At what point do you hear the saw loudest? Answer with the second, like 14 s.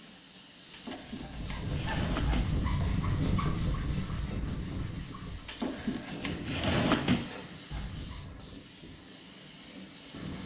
3 s.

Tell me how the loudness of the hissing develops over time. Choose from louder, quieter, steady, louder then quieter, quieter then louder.
steady.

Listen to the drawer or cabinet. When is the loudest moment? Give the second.
7 s.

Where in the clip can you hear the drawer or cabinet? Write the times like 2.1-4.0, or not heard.
0.7-2.5, 5.5-7.3.